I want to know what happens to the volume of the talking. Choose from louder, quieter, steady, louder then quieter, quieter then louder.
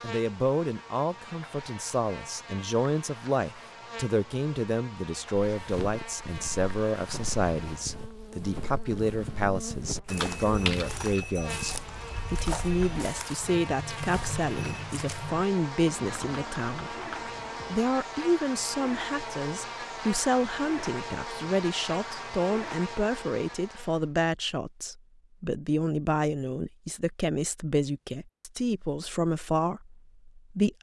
steady.